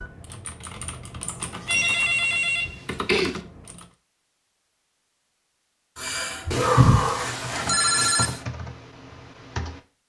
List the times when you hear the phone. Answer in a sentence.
You can hear the phone from 1.6 to 3.4 s and from 6.5 to 8.4 s.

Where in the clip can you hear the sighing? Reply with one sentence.
The sighing can be heard from 1.2 to 2.4 s and from 6.0 to 7.2 s.